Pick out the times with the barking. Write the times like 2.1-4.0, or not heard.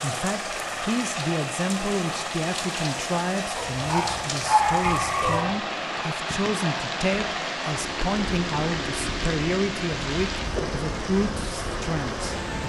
3.5-5.5.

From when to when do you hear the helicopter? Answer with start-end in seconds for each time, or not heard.
0.0-12.6.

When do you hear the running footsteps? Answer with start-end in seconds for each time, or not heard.
not heard.